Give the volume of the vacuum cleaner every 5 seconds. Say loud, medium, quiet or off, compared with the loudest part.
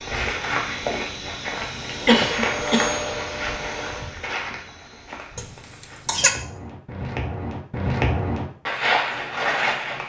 loud, off.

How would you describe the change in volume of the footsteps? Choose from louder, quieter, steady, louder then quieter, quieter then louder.
quieter then louder.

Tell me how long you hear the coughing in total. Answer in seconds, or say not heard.
2 s.